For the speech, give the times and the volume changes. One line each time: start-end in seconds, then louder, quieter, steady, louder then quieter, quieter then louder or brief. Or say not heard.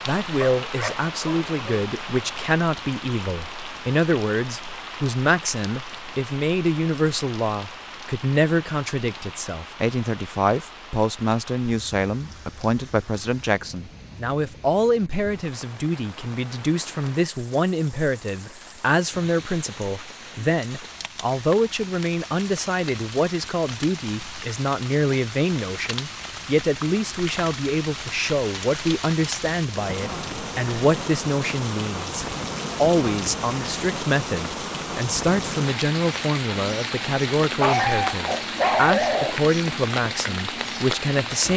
0.1-41.5 steady.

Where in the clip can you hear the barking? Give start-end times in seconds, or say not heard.
0.4-1.9, 37.6-39.4.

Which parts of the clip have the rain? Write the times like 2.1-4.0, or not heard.
0.0-41.5.